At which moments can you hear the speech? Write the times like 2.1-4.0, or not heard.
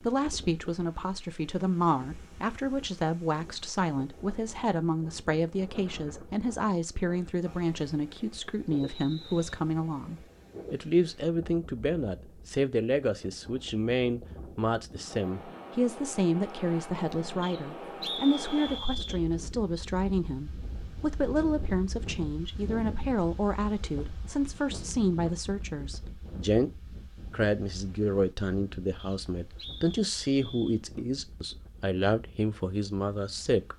0.0-33.7.